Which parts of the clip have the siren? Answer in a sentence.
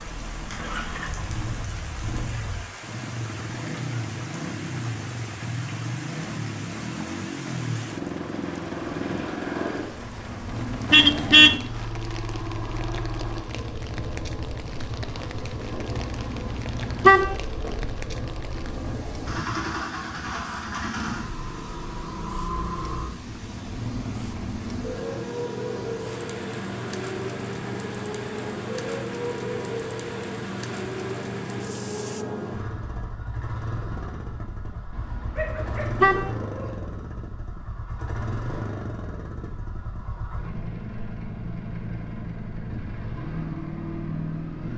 The siren can't be heard in this clip.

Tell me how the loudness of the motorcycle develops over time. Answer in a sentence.
The loudness of the motorcycle stays about the same.